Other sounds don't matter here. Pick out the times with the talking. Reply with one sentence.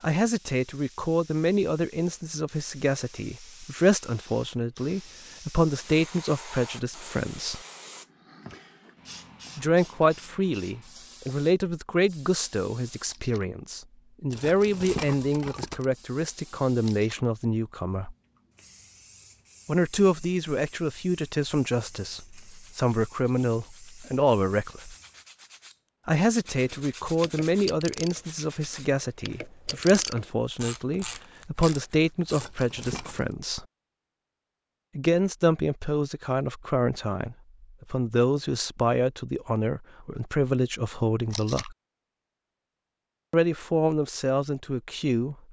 You can hear the talking from 0.0 to 7.6 s, from 9.6 to 18.1 s, from 19.6 to 24.9 s, from 26.1 to 33.6 s, from 35.0 to 41.8 s and from 43.3 to 45.4 s.